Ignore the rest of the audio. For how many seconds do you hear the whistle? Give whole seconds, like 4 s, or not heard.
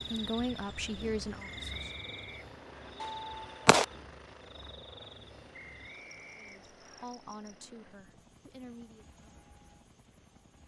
3 s.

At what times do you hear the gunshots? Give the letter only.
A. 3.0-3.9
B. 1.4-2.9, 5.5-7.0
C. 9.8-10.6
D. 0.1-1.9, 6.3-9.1
A.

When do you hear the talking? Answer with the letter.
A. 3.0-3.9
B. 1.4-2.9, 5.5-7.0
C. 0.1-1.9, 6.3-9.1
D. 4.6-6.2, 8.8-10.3
C.